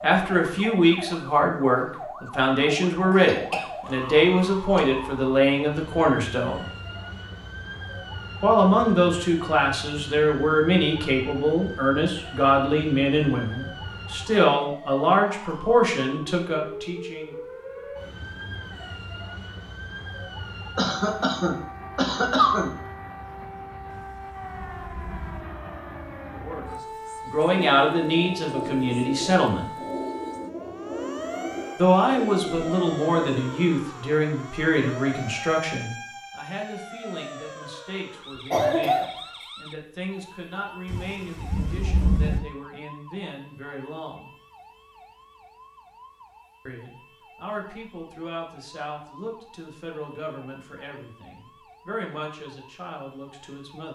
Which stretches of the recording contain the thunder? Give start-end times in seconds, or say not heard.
23.9-25.4, 40.9-42.4.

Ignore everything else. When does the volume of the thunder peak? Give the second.
42 s.